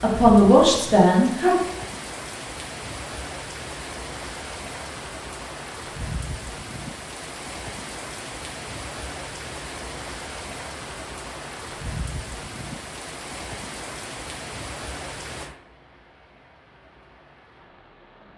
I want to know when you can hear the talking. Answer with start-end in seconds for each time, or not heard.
0.0-1.6.